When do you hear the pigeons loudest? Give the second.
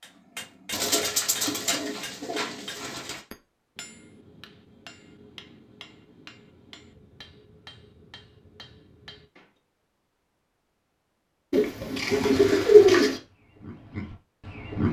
13 s.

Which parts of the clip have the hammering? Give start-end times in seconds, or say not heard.
0.0-9.6.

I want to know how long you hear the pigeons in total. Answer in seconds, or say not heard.
4 s.